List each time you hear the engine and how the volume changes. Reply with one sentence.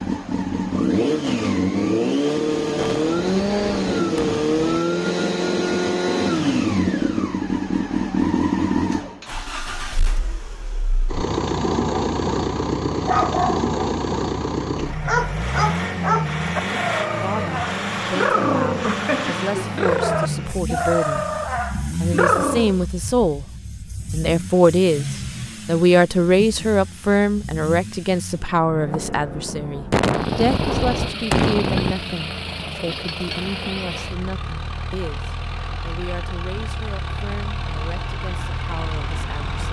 The engine can be heard from 0.0 to 39.6 s, getting quieter.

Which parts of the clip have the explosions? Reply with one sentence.
You can hear the explosions from 2.8 to 4.8 s and from 29.9 to 31.9 s.